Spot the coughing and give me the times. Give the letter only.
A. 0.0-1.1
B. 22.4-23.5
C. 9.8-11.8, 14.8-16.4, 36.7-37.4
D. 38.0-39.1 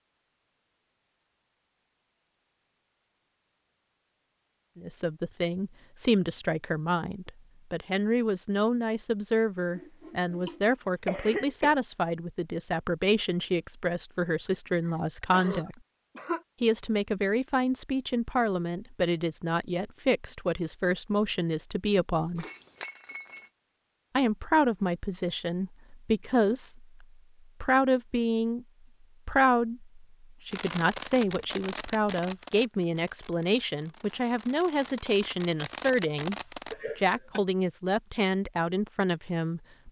C.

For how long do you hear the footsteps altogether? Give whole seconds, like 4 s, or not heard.
not heard.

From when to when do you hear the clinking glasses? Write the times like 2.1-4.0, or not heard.
22.4-23.5.